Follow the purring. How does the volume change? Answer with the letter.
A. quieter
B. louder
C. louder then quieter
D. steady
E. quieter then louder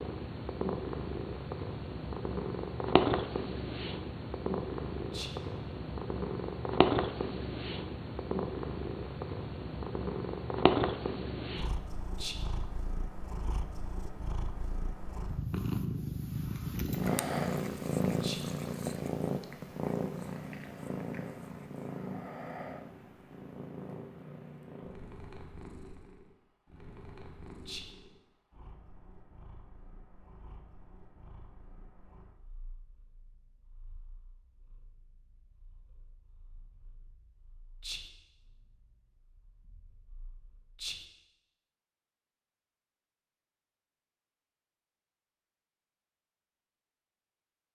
A.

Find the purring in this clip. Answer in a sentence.
You can hear the purring from 0.0 to 41.0 s.